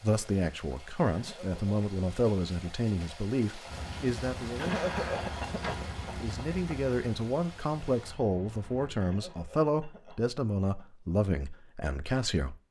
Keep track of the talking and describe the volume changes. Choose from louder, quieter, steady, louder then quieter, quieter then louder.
steady.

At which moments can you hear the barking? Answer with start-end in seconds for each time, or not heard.
not heard.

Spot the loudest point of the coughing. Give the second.
5 s.